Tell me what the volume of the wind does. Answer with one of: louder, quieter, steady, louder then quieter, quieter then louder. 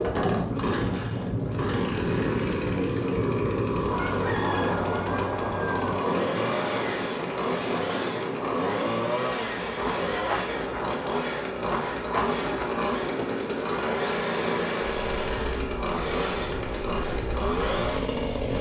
quieter.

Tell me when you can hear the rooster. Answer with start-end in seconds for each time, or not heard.
4.0-6.0.